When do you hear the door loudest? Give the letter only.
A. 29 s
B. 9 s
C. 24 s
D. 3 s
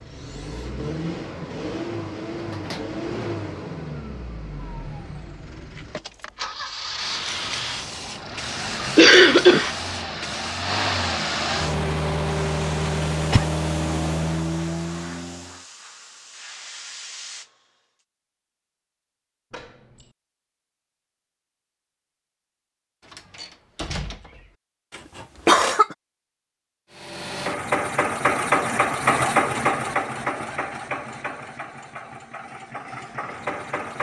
C.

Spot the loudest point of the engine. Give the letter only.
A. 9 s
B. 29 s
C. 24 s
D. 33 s
B.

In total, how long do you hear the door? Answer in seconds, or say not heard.
3 s.